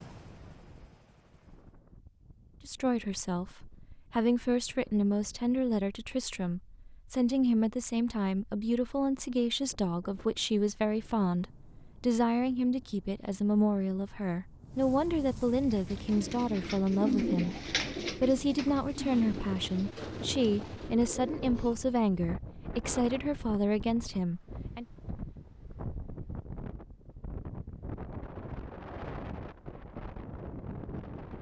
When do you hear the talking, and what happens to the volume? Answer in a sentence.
You can hear the talking from 2.6 to 24.9 s, at a steady volume.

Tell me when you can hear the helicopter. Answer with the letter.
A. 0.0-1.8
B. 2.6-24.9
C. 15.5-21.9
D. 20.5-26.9
A.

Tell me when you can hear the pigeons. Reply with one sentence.
The pigeons can be heard from 15.5 to 21.9 s.